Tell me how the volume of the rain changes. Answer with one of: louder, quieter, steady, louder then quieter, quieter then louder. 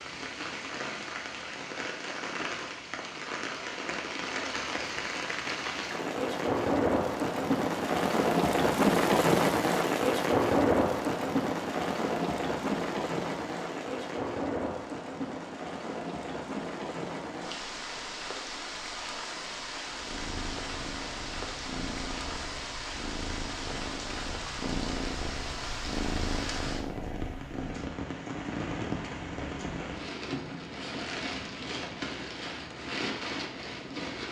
louder then quieter.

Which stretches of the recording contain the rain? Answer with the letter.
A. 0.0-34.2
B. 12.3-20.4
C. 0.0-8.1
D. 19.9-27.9
A.